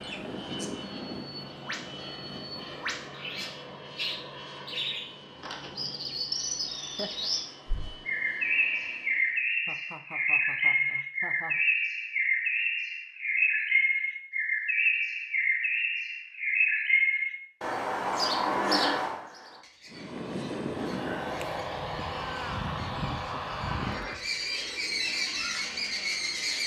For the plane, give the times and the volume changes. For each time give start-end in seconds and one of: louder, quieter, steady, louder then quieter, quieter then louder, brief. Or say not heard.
0.0-9.4 quieter
19.9-26.6 quieter.